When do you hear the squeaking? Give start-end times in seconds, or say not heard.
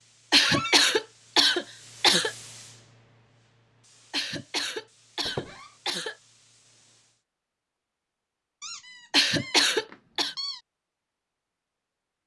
0.4-0.9, 5.2-5.7, 8.6-10.6.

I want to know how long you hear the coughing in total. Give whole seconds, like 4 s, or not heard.
5 s.